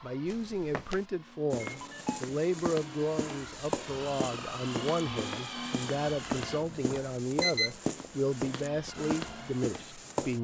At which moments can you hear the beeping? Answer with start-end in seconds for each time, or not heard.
1.6-2.2, 6.2-7.8.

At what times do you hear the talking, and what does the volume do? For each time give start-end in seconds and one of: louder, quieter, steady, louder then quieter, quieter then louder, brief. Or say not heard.
0.0-10.3 steady.